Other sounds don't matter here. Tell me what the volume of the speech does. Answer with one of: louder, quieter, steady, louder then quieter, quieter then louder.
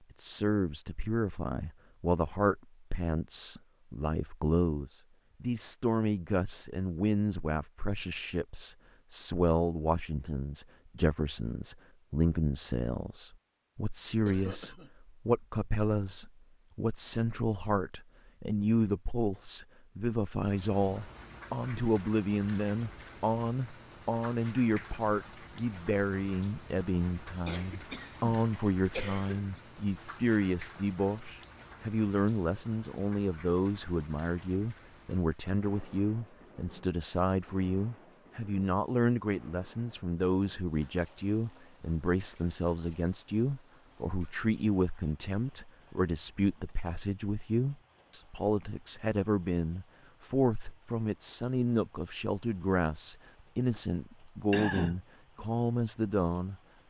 steady.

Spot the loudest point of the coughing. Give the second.
55 s.